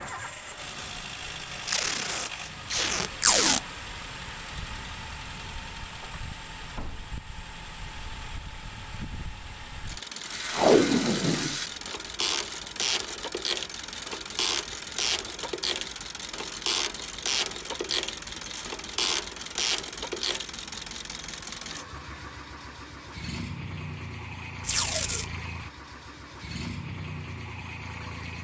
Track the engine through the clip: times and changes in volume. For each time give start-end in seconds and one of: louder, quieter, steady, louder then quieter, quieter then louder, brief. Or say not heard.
0.0-28.3 steady.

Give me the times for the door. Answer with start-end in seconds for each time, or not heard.
not heard.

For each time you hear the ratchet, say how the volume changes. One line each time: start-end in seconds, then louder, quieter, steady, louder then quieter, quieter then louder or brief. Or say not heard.
10.2-20.4 steady.